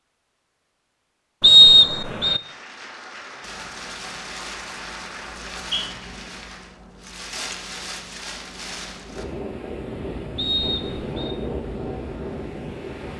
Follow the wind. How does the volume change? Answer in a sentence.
The volume of the wind goes up.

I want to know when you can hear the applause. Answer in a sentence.
The applause can be heard from 2.3 to 6.8 s.